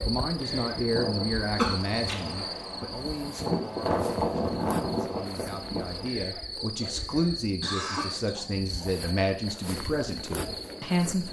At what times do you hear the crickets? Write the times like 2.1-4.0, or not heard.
0.0-11.2.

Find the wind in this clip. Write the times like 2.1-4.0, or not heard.
0.0-6.1.